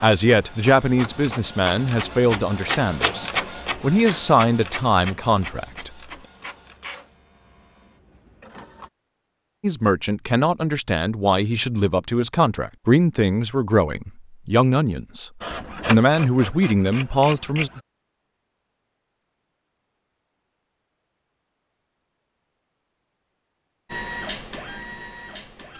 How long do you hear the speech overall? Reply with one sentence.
The speech can be heard for 14 seconds in total.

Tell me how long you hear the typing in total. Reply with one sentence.
The typing can't be heard in this clip.